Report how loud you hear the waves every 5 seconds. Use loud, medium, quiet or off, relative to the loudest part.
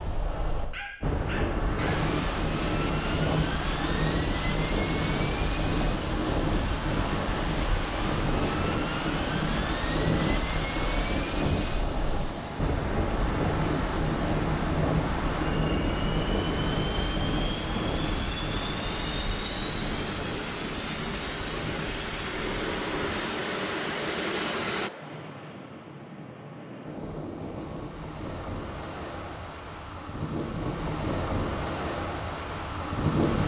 loud, loud, loud, loud, medium, medium, loud.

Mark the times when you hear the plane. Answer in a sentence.
You can hear the plane from 1.8 to 24.9 s.